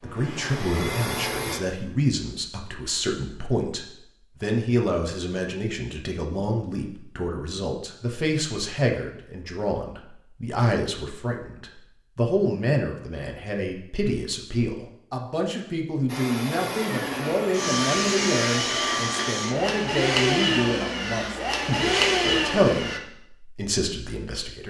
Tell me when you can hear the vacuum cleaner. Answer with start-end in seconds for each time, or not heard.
0.0-1.6, 16.1-23.0.